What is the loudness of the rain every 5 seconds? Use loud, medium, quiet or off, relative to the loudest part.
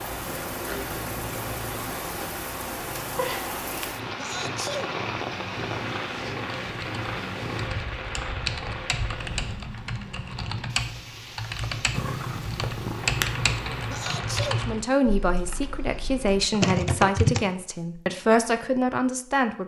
loud, loud, medium, off.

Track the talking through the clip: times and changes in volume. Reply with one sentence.
The talking can be heard from 14.6 to 19.6 s, at a steady volume.